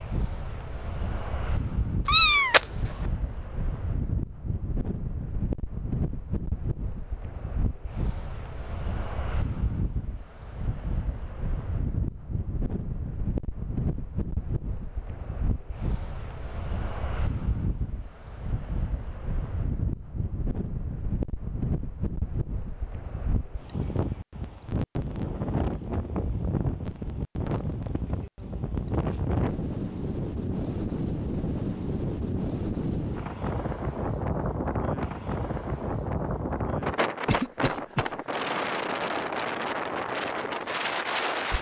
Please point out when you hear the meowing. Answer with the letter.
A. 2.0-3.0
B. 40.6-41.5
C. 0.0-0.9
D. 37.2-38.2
A.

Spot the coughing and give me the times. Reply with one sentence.
The coughing can be heard from 37.2 to 38.2 s.